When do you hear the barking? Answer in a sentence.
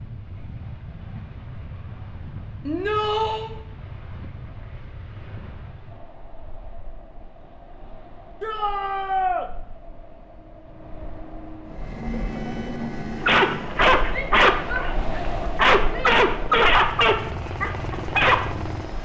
You can hear the barking from 13.2 to 18.4 s.